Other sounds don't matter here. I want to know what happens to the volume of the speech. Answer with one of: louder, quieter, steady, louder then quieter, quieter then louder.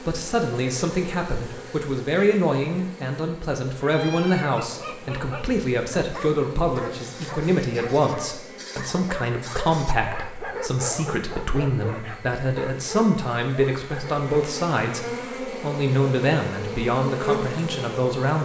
steady.